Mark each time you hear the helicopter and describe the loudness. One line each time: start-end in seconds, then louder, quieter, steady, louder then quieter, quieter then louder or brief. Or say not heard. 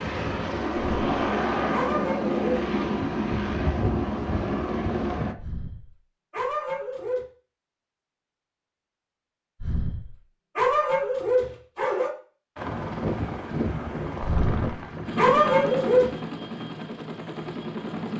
0.0-5.3 steady
12.6-18.1 quieter.